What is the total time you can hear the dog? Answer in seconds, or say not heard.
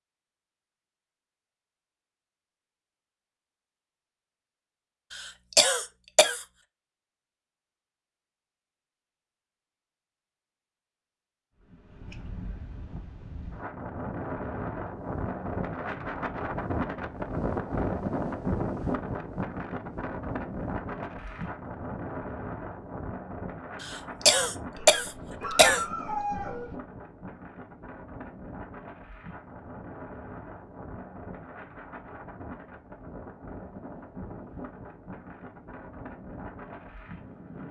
2 s.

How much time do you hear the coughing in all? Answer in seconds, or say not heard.
3 s.